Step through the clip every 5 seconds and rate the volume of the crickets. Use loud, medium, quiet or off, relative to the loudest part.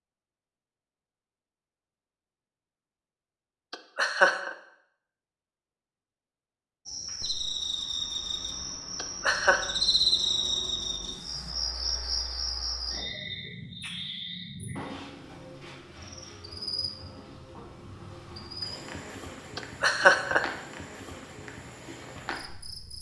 off, loud, loud, medium, medium.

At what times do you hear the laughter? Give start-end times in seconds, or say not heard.
3.7-4.5, 8.9-9.6, 19.6-20.4.